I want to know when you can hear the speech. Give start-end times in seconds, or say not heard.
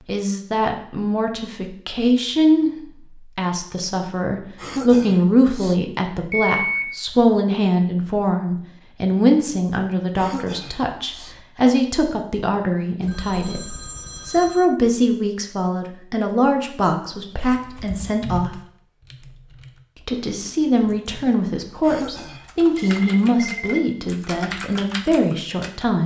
0.1-13.7, 14.2-18.6, 20.1-26.0.